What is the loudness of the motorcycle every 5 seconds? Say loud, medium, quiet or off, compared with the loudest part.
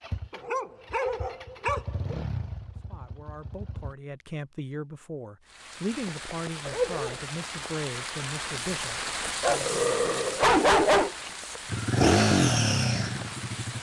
quiet, off, loud.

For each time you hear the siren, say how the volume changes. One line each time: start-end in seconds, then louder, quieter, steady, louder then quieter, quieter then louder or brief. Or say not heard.
not heard.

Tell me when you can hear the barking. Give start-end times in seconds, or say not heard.
0.3-2.1, 6.7-7.2, 9.4-11.2.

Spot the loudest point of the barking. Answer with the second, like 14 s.
11 s.